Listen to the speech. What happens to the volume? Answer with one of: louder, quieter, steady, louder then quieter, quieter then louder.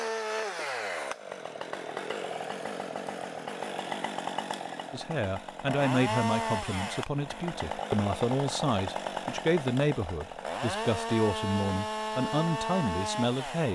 steady.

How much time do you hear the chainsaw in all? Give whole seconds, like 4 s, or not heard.
14 s.